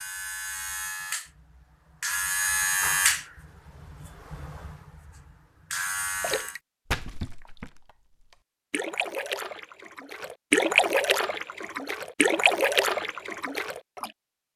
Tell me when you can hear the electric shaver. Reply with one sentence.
You can hear the electric shaver from 0.0 to 6.6 s.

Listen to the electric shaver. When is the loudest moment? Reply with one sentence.
The loudest moment of the electric shaver is at 3 seconds.